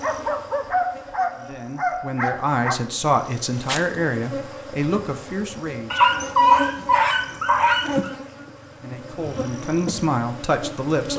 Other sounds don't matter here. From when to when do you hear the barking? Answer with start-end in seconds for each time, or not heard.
0.0-2.8, 5.9-8.1.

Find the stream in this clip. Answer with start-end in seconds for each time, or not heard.
not heard.